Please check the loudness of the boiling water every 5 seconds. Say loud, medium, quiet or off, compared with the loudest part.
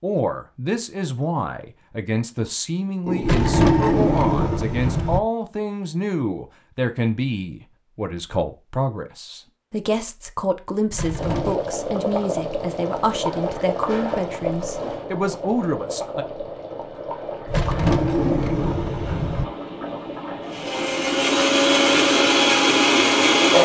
off, off, loud, medium, medium.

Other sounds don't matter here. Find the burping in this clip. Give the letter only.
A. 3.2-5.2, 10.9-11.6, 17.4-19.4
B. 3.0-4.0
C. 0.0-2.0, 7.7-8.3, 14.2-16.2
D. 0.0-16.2
B.